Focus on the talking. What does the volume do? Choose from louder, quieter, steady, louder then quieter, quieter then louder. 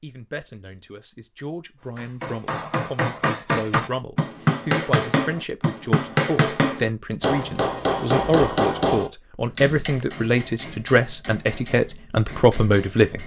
louder.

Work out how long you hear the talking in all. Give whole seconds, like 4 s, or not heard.
13 s.